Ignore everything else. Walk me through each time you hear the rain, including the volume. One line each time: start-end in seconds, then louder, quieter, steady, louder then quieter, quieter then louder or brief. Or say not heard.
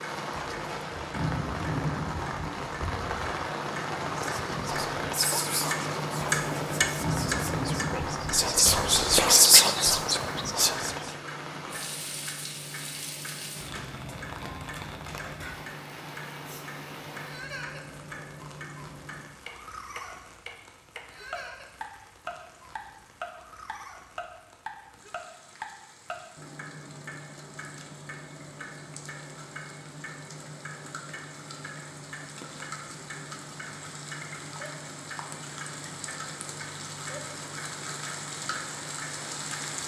0.0-39.8 quieter then louder.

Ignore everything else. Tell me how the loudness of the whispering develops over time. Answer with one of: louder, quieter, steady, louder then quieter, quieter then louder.
quieter then louder.